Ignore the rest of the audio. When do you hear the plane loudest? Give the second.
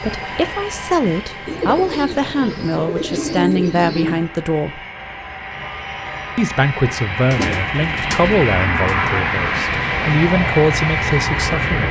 9 s.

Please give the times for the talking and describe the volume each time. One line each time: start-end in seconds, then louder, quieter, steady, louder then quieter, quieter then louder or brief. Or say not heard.
0.0-4.8 steady
6.3-11.8 quieter then louder.